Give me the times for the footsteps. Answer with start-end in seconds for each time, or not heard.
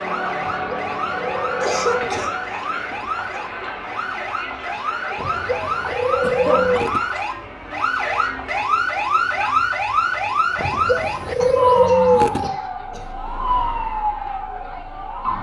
not heard.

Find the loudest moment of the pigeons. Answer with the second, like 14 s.
12 s.